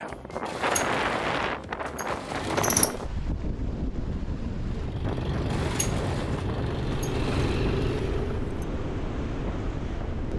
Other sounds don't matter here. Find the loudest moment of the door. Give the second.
3 s.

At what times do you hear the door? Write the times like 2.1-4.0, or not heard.
0.5-3.0, 5.5-7.6.